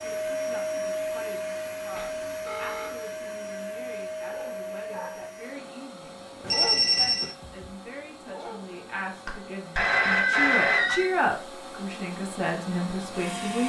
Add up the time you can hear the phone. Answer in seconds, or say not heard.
4 s.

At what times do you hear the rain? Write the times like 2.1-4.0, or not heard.
not heard.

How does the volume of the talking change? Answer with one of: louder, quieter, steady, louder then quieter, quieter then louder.
louder.